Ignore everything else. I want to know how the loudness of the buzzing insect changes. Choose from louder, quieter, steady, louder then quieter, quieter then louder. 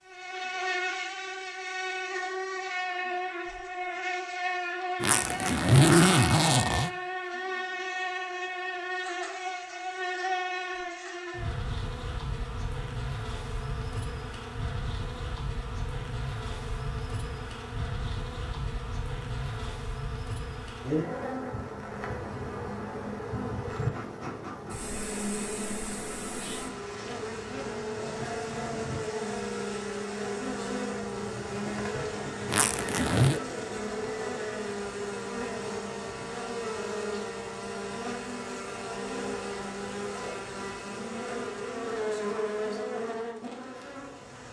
steady.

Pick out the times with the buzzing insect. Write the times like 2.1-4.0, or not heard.
0.0-44.4.